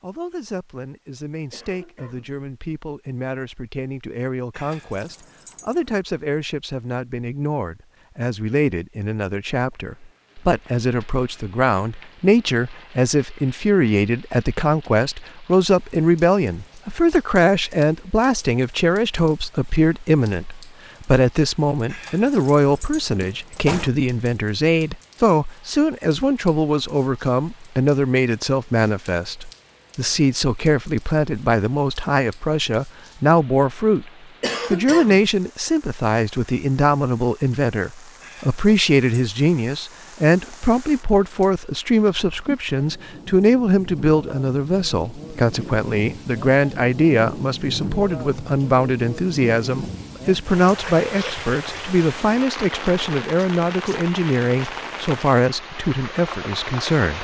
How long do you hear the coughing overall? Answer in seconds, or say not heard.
2 s.